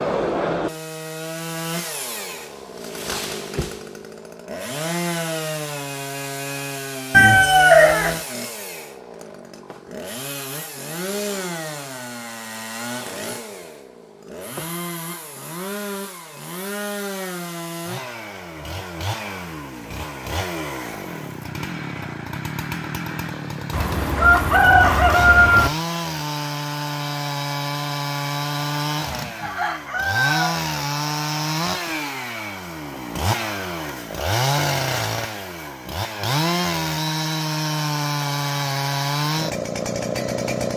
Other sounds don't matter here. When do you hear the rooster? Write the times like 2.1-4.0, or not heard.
7.1-8.2, 23.7-25.7, 29.1-30.6.